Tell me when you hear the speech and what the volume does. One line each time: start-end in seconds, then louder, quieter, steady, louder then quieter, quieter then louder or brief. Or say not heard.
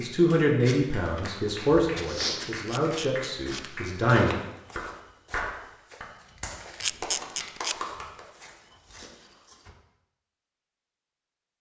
0.0-4.3 quieter.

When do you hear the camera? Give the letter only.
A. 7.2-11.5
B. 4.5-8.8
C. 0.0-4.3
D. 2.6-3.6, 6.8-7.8
D.